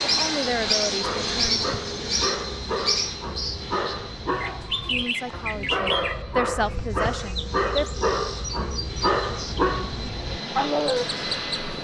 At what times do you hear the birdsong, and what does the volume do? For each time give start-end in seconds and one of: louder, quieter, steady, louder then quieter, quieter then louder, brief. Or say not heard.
0.0-10.1 quieter
10.9-11.6 brief.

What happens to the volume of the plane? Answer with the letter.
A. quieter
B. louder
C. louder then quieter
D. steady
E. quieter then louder
E.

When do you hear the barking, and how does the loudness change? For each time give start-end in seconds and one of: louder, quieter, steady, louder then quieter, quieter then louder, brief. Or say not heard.
1.0-11.1 louder.